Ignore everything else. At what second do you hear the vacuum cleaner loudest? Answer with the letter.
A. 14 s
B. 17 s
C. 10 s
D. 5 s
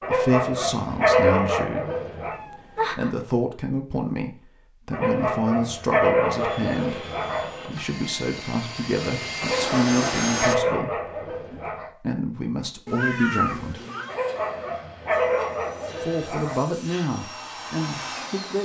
C.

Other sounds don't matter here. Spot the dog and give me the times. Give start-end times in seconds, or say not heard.
0.0-2.4, 4.9-7.5, 9.4-11.9, 14.1-16.6.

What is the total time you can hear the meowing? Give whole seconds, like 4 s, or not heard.
2 s.